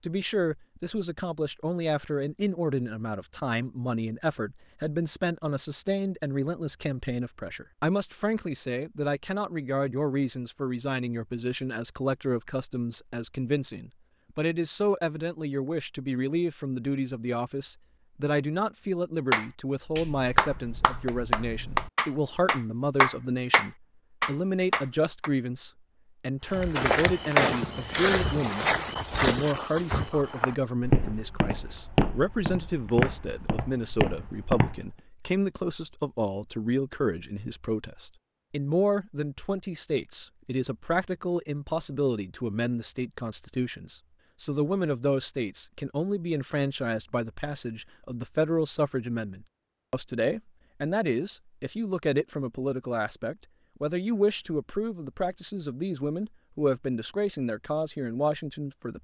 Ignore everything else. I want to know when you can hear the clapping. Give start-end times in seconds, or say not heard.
19.3-25.3.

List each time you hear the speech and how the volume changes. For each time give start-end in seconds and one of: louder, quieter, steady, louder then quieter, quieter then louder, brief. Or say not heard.
0.0-58.9 steady.